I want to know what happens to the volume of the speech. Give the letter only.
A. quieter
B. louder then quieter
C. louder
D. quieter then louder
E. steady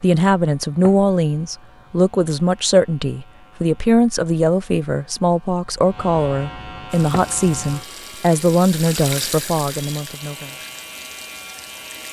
E.